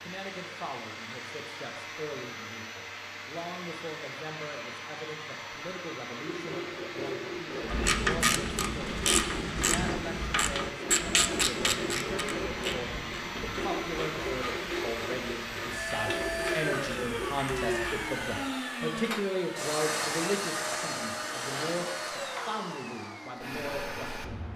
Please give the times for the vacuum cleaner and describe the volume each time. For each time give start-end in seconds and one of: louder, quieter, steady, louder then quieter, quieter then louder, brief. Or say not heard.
0.0-24.5 louder.